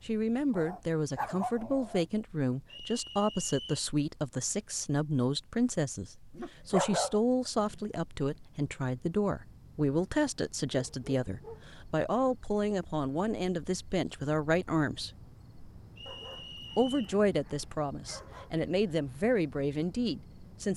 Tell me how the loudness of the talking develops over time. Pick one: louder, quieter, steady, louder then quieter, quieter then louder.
steady.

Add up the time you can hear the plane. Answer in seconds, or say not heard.
not heard.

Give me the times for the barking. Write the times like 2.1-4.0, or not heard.
0.5-2.0, 6.3-7.9, 10.7-11.7, 16.1-18.6.